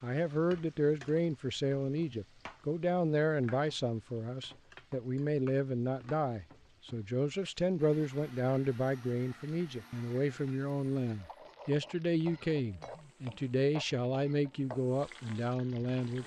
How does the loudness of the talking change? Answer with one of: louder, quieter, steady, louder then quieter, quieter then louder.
steady.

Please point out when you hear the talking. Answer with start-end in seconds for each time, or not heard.
0.0-16.2.